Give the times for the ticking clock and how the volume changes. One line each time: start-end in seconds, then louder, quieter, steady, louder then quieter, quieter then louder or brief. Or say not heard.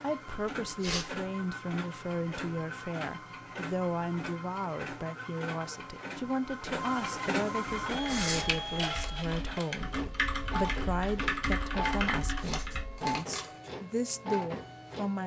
not heard.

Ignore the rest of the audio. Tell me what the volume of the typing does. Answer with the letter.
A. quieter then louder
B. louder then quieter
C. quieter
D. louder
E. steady
D.